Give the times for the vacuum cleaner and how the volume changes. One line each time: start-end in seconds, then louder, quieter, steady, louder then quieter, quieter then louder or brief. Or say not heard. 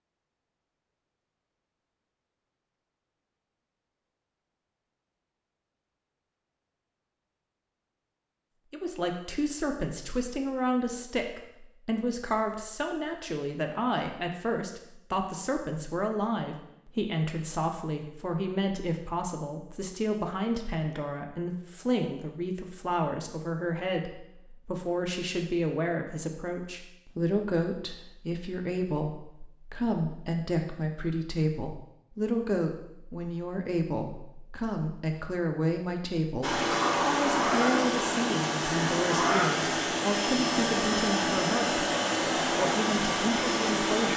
36.4-44.1 steady.